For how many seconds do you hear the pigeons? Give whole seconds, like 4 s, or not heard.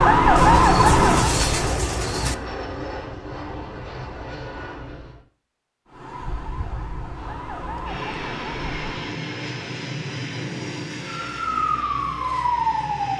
2 s.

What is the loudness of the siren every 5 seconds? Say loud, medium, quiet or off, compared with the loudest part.
loud, quiet, medium.